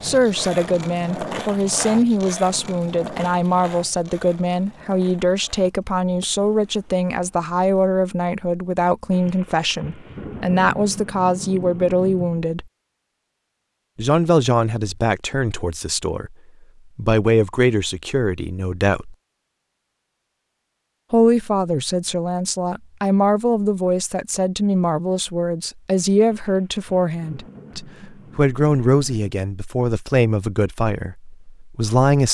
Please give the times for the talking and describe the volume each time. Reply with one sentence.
The talking can be heard from 0.0 to 12.7 s, at a steady volume; briefly from 13.9 to 16.4 s; briefly from 16.9 to 19.1 s; and from 21.1 to 32.2 s, at a steady volume.